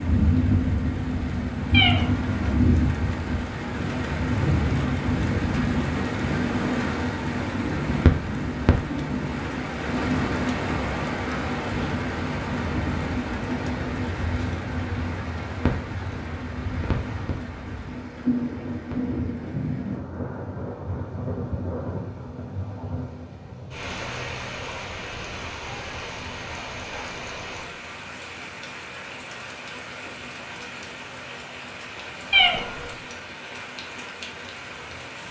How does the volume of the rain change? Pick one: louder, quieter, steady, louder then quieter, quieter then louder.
quieter.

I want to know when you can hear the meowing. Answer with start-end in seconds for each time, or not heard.
1.7-2.5, 32.3-32.9.